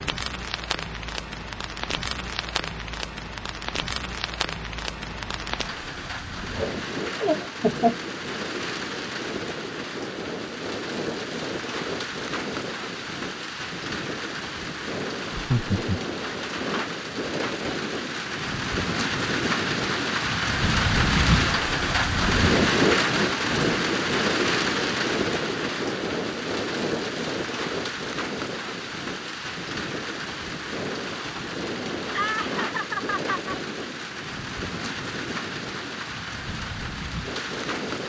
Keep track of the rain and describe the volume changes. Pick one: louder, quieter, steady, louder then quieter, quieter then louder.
louder then quieter.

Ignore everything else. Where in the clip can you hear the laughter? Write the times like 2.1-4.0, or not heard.
6.5-8.0, 15.3-16.1, 32.0-33.5.